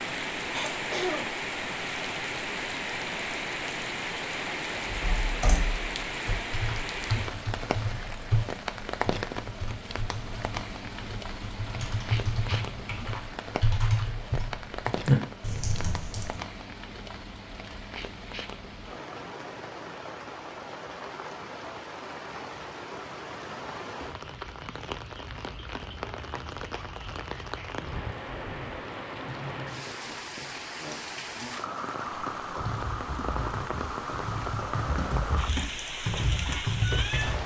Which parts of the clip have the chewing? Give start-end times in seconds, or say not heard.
not heard.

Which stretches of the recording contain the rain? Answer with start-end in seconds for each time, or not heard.
0.0-37.4.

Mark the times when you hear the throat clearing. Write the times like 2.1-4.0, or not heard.
0.5-1.3, 29.8-31.6.